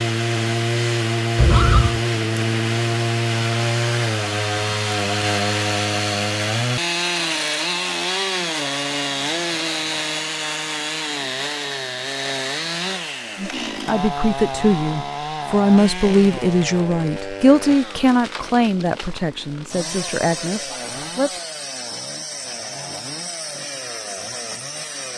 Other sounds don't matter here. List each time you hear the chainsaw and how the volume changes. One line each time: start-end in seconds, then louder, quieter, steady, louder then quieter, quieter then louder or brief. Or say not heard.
0.0-25.1 quieter.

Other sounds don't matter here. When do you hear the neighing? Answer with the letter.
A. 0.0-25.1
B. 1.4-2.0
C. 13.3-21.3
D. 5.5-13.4
B.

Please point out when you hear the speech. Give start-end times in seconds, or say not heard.
13.3-21.3.